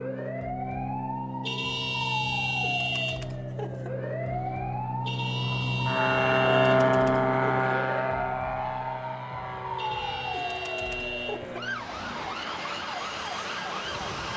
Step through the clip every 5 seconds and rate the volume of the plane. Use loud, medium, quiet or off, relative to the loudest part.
medium, loud, quiet.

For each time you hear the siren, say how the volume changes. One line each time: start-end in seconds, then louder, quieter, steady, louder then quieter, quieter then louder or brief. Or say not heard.
0.0-14.3 steady.